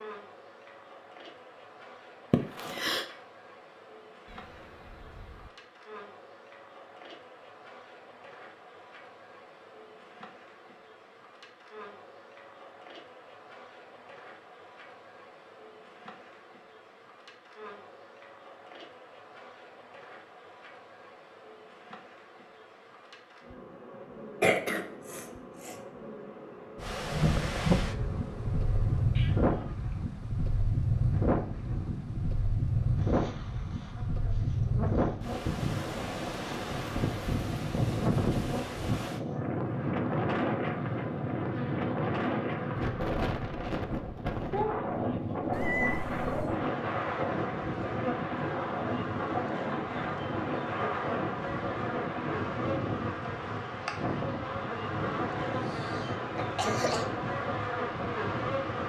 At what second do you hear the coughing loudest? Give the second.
25 s.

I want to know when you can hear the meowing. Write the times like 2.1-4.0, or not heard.
4.2-5.5, 29.1-29.8, 45.5-46.5.